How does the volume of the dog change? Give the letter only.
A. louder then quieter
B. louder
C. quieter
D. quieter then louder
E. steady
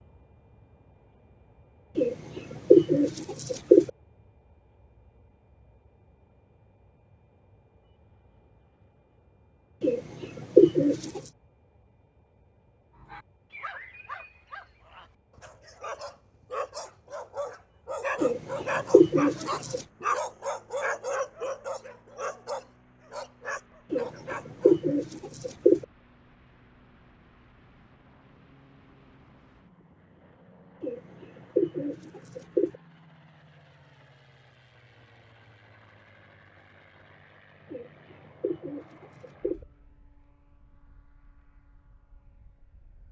A.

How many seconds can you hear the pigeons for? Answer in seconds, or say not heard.
11 s.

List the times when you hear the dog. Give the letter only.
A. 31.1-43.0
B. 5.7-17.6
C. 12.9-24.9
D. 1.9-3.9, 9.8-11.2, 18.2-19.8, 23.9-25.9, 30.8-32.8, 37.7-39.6
C.